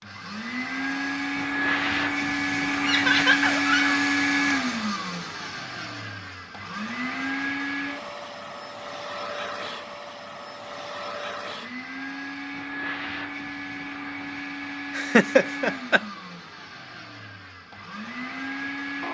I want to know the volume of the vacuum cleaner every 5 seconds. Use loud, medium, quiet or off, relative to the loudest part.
loud, medium, medium, medium.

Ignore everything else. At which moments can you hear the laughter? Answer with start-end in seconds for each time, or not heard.
2.8-4.0, 14.9-16.0.